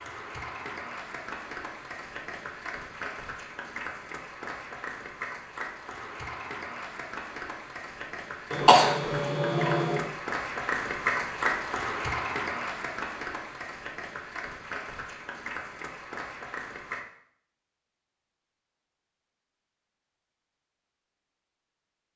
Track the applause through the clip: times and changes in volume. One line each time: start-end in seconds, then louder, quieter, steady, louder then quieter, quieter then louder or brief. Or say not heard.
0.0-17.1 louder then quieter.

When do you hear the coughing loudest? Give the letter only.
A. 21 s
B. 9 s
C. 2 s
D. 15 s
B.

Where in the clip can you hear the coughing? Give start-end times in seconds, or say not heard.
8.5-10.1.